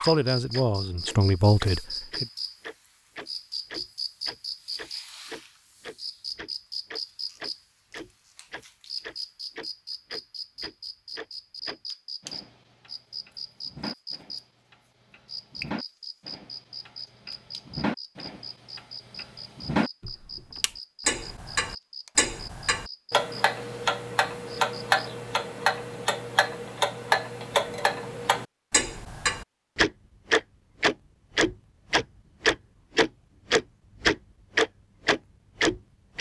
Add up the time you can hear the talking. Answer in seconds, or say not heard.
2 s.